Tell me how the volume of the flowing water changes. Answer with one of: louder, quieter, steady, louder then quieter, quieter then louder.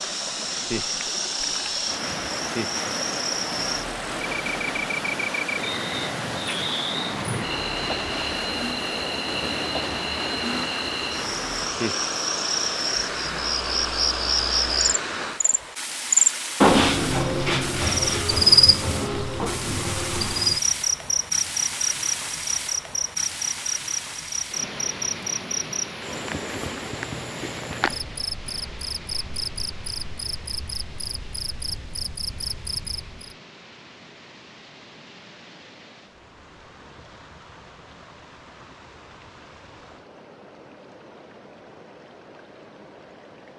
quieter.